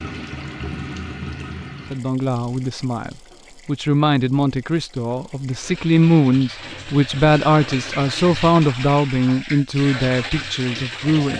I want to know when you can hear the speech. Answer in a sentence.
The speech can be heard from 1.9 to 11.3 s.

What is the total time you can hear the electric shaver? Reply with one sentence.
The electric shaver can't be heard in this clip.